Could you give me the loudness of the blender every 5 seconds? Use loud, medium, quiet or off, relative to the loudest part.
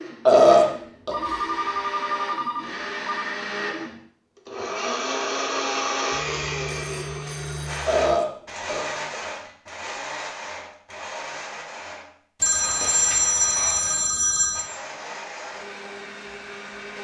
loud, loud, medium, medium.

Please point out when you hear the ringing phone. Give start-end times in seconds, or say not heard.
1.1-3.2, 6.1-8.2, 12.4-14.7.